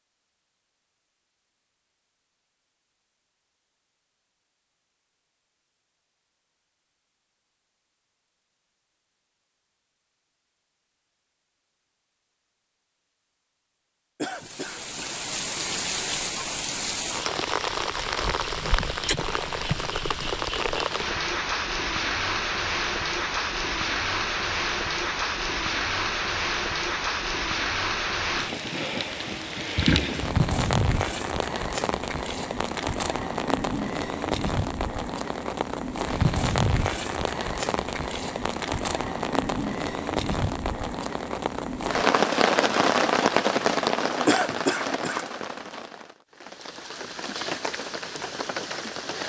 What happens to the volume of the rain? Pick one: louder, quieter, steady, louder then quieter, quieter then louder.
steady.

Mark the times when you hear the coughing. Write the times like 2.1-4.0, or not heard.
14.2-15.2, 44.2-45.2.